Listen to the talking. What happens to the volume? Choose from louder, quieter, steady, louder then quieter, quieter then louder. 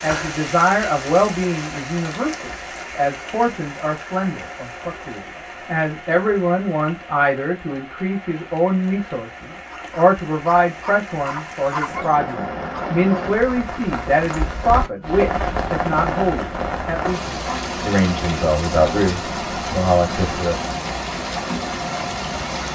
steady.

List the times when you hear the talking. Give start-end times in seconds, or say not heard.
0.0-20.6.